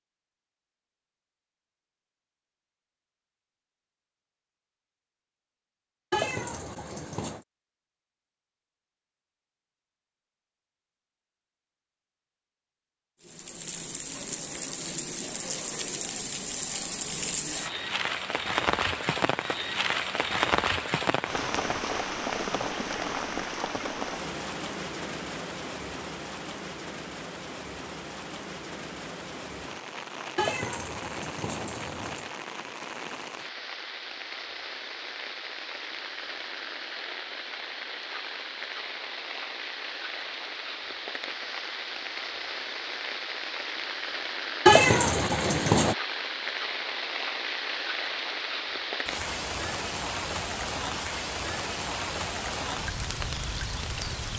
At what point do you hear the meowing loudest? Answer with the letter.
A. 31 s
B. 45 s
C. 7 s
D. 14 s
B.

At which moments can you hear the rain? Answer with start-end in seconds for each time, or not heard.
13.2-54.3.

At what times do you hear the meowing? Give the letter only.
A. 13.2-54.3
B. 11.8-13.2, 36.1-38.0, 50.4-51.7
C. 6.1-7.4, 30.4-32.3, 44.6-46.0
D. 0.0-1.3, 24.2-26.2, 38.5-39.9
C.